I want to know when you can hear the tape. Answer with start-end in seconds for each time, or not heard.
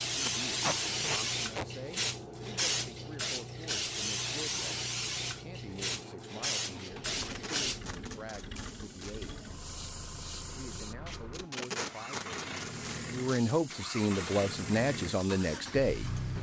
0.2-1.6, 6.8-9.3, 11.1-13.6.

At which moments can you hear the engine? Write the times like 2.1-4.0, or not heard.
0.0-16.3.